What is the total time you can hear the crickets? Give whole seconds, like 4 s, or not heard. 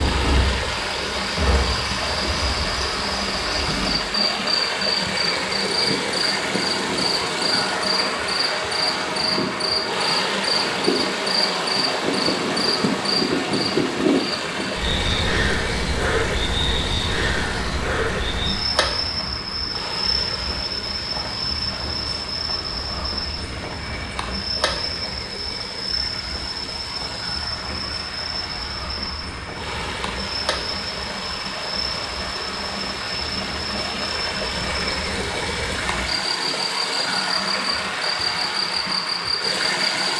40 s.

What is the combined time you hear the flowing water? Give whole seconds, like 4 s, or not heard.
40 s.